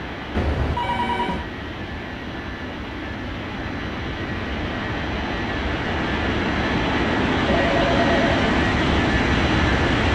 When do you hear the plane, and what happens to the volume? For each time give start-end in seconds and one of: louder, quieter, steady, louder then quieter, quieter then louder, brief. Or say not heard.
0.0-10.1 louder.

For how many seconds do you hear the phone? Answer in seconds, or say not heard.
2 s.